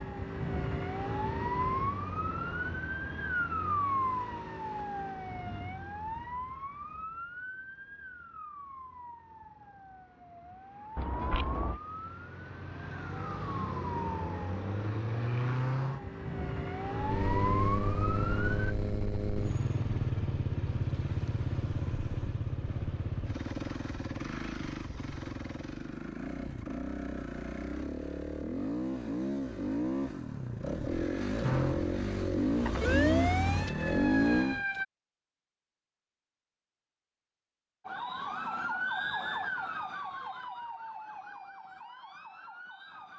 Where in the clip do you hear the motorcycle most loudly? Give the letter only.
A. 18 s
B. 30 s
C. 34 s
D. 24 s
C.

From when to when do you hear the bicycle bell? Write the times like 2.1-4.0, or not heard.
10.9-11.8.